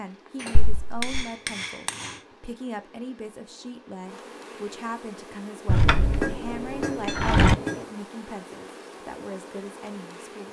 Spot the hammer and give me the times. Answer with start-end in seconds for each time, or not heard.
0.3-2.2, 5.8-7.8.